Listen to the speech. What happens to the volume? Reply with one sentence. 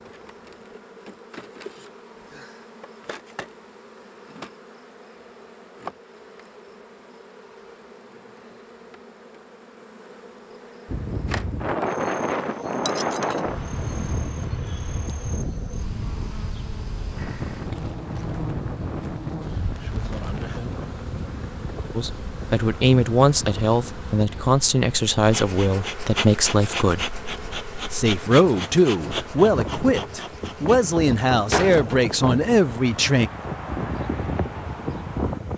The loudness of the speech stays about the same.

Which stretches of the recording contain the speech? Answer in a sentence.
The speech can be heard from 21.9 to 27.1 s and from 27.9 to 33.3 s.